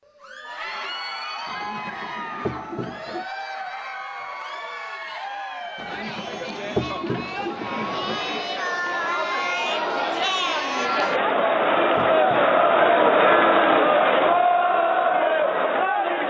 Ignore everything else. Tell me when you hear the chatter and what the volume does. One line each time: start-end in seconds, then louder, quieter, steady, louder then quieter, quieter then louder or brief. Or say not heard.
0.0-16.2 louder.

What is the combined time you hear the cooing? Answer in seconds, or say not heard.
6 s.